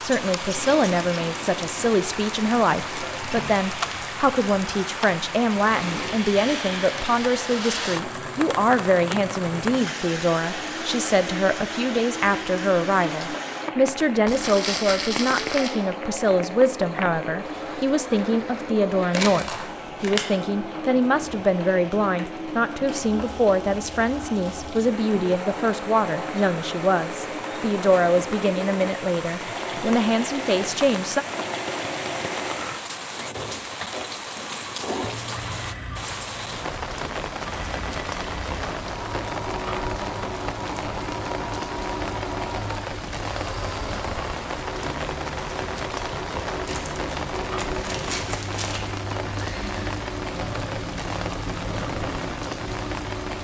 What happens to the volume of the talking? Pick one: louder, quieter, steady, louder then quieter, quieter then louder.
steady.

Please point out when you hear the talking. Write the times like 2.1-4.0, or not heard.
0.0-31.2.